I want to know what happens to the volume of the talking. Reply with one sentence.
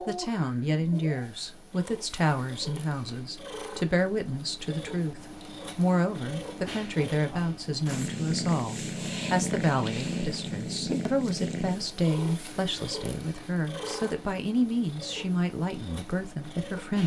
The loudness of the talking stays about the same.